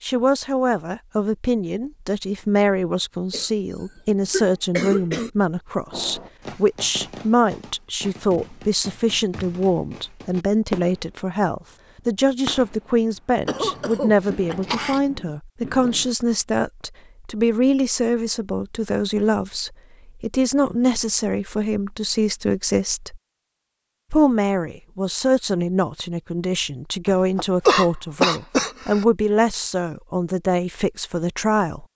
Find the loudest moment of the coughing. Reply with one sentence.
The volume of the coughing peaks at 28 seconds.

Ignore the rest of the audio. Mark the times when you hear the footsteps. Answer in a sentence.
You can't hear the footsteps here.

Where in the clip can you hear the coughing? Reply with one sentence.
The coughing can be heard from 3.3 to 5.3 s, from 13.4 to 15.0 s and from 27.1 to 29.1 s.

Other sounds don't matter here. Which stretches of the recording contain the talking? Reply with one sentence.
You can hear the talking from 0.0 to 23.2 s and from 24.1 to 31.9 s.